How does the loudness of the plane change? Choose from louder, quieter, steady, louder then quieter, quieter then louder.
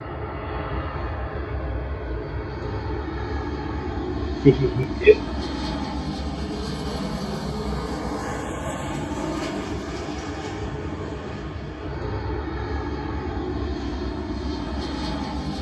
steady.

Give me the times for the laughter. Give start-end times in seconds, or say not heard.
4.5-5.2.